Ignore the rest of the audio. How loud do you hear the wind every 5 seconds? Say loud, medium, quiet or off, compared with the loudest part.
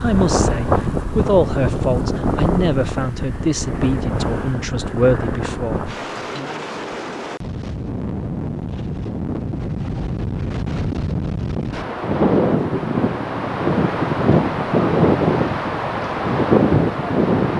medium, medium, loud, loud.